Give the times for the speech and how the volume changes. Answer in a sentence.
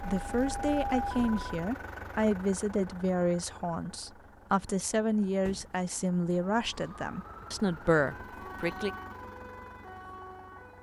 You can hear the speech from 0.0 to 8.9 s, at a steady volume.